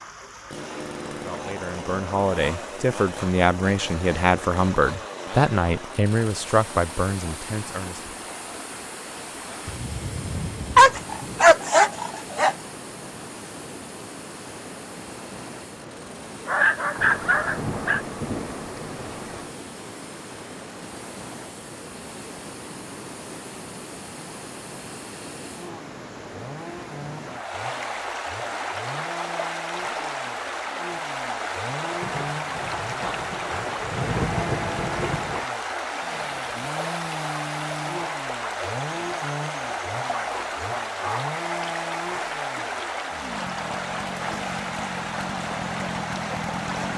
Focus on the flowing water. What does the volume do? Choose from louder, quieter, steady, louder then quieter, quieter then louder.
louder.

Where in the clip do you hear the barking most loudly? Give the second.
11 s.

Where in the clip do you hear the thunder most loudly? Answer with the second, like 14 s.
34 s.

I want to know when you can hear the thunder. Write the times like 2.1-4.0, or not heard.
9.7-11.4, 16.9-19.5, 32.0-35.5.